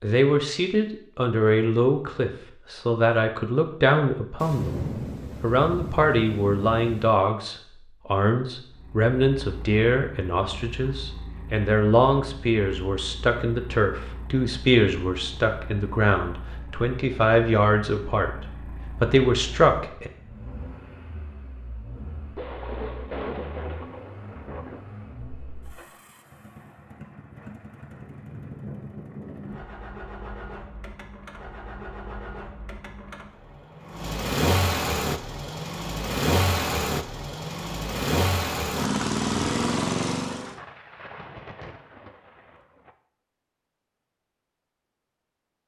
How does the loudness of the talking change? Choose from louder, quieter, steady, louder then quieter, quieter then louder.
steady.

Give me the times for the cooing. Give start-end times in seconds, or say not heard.
not heard.